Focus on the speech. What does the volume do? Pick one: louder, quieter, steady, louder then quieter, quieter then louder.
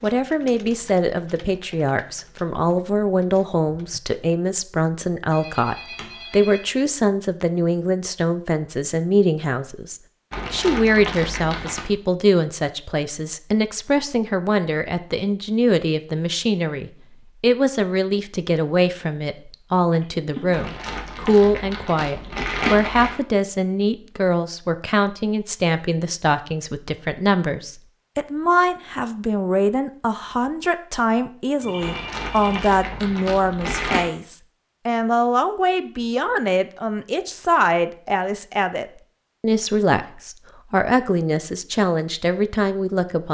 steady.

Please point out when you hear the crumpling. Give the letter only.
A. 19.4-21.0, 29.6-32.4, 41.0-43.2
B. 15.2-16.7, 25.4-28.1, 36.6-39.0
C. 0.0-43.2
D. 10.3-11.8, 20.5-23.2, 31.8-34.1
D.